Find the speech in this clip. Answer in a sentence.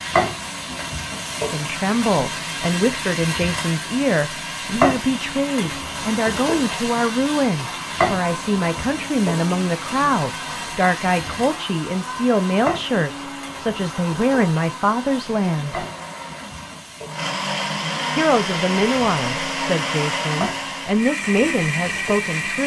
The speech can be heard from 1.5 to 15.8 s and from 18.1 to 22.6 s.